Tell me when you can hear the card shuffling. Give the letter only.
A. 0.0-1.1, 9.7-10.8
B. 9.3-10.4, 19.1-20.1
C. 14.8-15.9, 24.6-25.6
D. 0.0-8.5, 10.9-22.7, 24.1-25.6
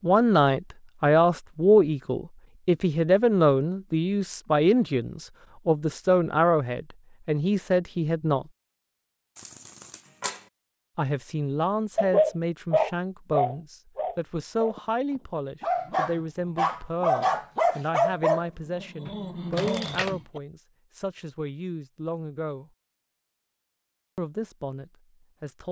B.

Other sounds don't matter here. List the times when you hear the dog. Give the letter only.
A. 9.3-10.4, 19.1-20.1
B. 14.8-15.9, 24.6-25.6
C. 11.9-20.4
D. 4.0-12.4
C.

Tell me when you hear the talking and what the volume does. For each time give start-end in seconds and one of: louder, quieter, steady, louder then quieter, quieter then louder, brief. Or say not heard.
0.0-8.5 quieter
10.9-22.7 quieter
24.1-25.6 brief.